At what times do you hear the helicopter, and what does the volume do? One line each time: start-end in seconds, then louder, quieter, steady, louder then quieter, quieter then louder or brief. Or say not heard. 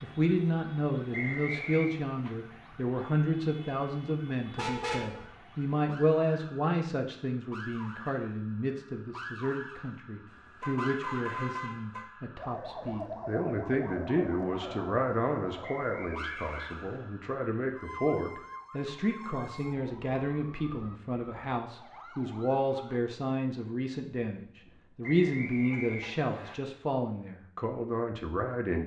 not heard.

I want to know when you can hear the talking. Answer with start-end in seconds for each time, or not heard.
0.0-28.8.